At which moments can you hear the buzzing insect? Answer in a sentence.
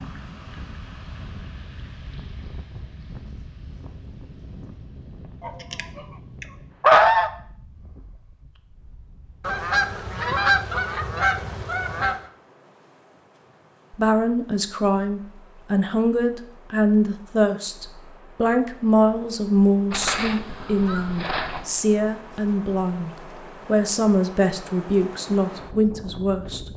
You can't hear the buzzing insect here.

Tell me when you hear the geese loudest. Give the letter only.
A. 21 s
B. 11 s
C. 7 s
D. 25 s
C.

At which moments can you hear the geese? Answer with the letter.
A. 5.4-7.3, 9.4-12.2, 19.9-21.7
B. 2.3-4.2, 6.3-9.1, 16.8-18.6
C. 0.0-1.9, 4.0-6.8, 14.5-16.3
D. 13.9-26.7
A.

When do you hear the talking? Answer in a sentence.
The talking can be heard from 13.9 to 26.7 s.